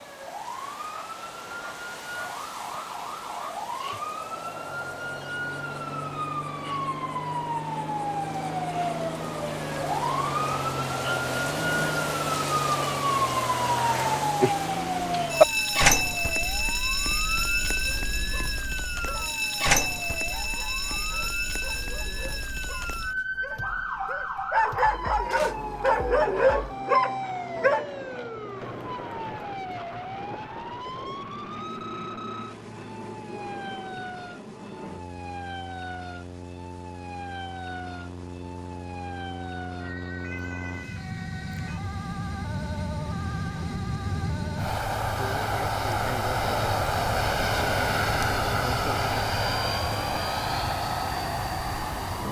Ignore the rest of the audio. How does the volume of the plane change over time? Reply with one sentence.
The volume of the plane goes up.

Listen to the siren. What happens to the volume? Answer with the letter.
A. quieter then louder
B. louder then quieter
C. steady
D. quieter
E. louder
B.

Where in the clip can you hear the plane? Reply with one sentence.
You can hear the plane from 25.3 to 52.2 s.